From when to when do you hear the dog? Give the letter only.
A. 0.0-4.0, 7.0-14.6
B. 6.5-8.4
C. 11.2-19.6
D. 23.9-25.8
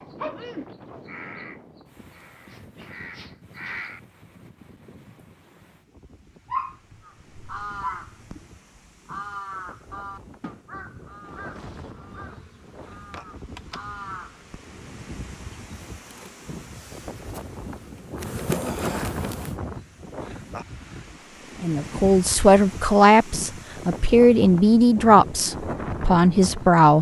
B.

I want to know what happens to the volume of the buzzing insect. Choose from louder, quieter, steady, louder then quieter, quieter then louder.
louder.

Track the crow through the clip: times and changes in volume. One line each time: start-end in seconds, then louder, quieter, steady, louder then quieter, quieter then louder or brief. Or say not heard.
0.0-4.0 quieter then louder
7.0-14.6 quieter then louder.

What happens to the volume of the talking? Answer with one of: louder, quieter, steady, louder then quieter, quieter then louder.
steady.